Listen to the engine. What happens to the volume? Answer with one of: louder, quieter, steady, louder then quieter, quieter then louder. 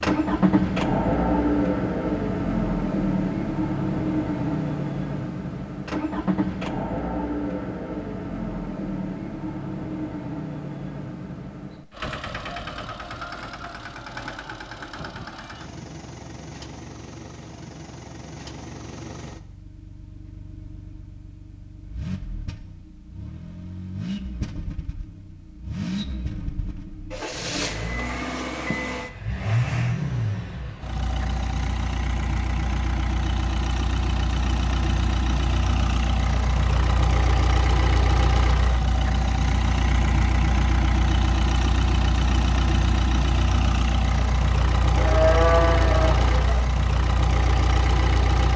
quieter then louder.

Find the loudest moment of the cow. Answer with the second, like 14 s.
45 s.